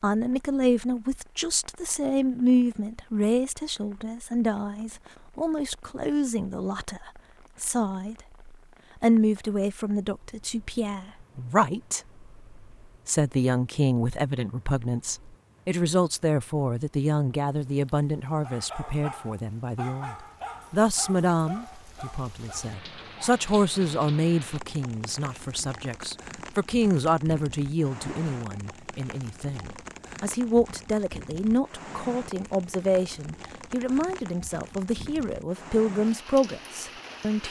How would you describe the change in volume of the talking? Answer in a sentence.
The loudness of the talking stays about the same.